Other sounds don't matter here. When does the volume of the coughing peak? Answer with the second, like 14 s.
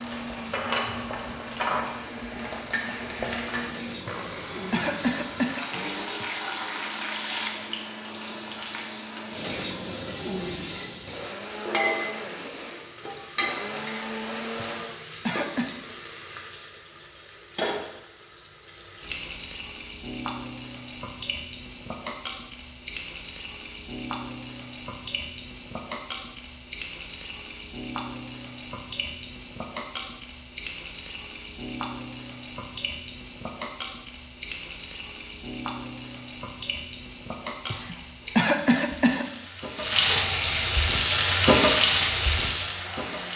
39 s.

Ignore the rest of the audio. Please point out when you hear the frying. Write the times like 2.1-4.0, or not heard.
0.0-43.3.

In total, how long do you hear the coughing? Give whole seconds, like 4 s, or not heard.
5 s.